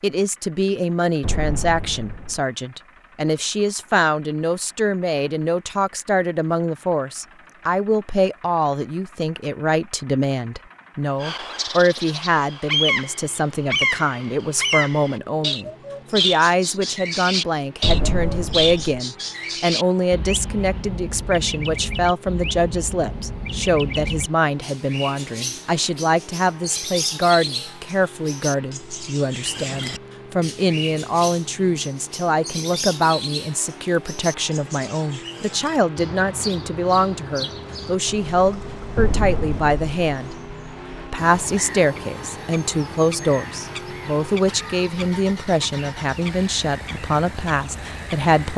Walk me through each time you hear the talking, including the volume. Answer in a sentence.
You can hear the talking from 0.0 to 40.4 s, at a steady volume; and from 41.0 to 48.5 s, at a steady volume.